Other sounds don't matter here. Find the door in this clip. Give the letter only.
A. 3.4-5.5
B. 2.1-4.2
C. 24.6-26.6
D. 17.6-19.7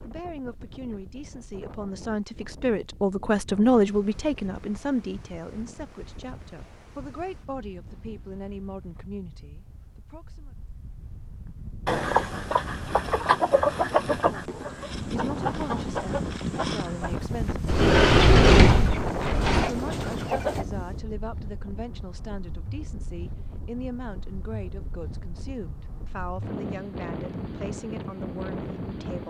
D.